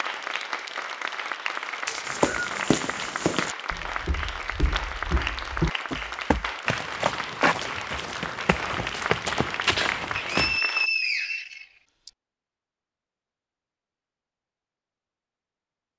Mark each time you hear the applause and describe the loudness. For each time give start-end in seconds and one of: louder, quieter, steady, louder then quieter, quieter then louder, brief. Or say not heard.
0.0-10.9 steady.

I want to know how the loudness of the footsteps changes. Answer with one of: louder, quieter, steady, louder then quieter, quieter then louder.
quieter then louder.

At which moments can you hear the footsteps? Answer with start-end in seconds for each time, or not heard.
2.0-10.6.